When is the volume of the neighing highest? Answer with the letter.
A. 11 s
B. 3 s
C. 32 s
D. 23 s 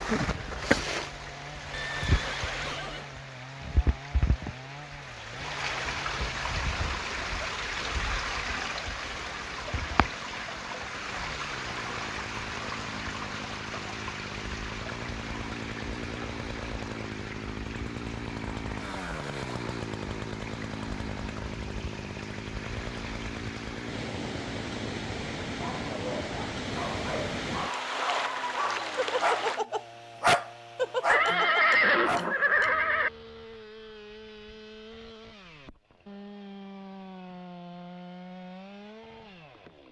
C.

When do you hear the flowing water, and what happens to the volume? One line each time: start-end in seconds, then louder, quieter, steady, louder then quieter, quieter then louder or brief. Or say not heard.
0.0-29.6 quieter then louder.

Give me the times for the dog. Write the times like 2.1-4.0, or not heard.
25.4-32.4.